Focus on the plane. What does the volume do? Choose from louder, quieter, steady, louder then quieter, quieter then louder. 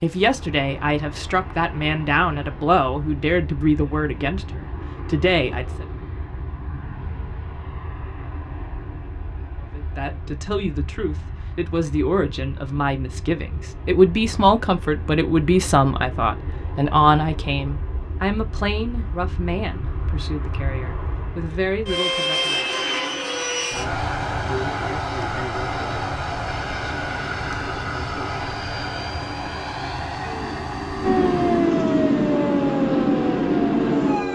louder.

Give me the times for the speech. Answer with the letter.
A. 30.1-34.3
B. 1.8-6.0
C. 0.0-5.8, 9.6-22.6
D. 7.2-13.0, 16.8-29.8
C.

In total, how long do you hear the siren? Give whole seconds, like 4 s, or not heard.
4 s.